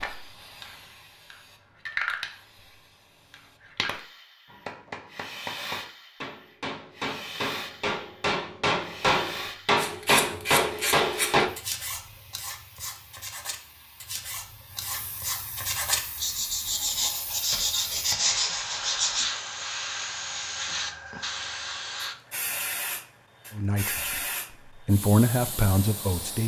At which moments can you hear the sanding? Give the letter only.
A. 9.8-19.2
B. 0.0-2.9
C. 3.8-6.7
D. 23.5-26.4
A.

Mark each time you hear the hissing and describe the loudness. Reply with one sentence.
The hissing can be heard from 0.0 to 26.4 s, getting quieter then louder.